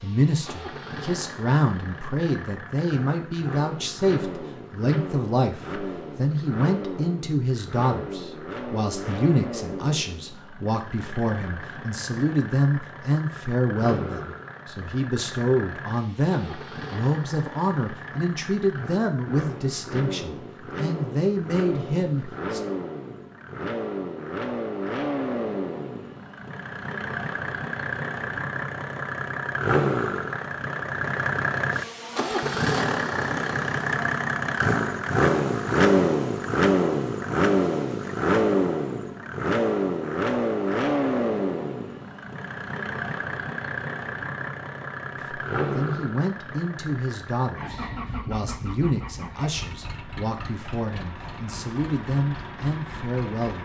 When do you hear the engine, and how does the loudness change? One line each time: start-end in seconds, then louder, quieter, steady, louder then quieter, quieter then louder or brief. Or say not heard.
0.0-53.6 louder then quieter.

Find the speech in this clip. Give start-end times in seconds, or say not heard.
0.0-22.6, 45.2-53.6.